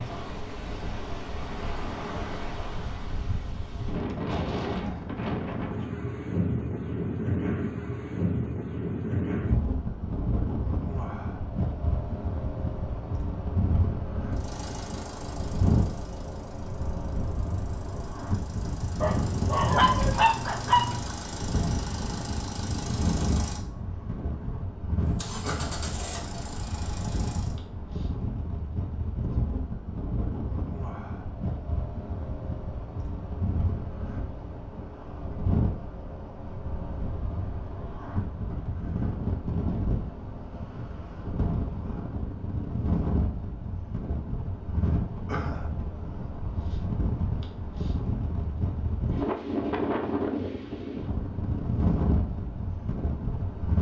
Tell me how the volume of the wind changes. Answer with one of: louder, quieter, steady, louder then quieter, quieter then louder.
steady.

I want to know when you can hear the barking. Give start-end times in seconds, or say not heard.
19.0-21.1.